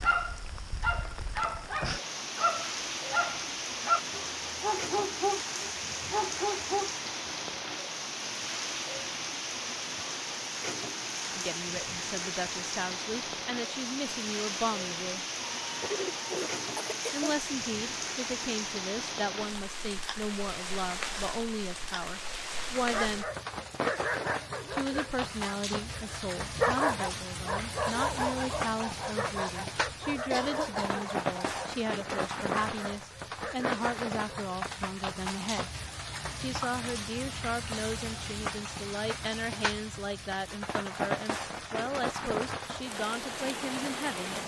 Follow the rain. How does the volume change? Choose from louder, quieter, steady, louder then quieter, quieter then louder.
steady.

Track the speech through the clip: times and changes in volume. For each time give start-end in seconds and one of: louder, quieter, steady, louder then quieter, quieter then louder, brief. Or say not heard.
11.2-15.2 louder
17.1-23.3 steady
24.7-35.7 steady
36.4-44.4 steady.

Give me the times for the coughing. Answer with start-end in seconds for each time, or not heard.
15.6-17.4, 30.3-31.1.